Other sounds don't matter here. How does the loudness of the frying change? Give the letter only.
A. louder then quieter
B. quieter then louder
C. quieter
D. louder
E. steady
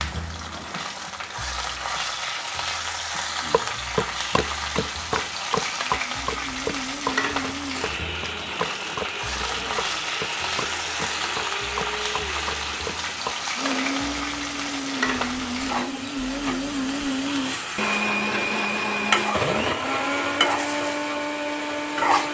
E.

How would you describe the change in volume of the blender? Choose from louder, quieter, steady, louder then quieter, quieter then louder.
louder.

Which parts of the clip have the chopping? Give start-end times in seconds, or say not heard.
3.5-13.3.